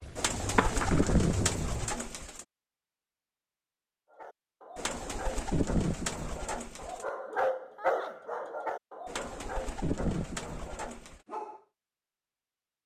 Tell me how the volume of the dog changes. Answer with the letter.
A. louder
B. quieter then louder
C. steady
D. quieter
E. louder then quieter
E.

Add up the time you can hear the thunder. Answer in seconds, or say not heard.
2 s.